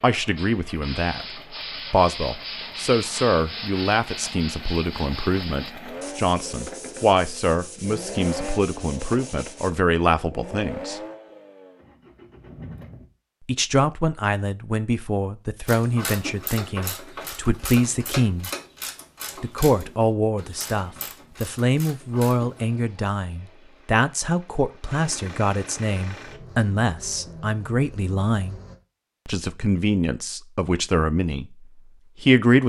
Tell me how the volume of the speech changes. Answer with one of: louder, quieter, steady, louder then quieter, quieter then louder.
steady.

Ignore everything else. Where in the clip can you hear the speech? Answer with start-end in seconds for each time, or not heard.
0.0-11.0, 13.4-18.5, 19.4-28.6, 29.2-32.6.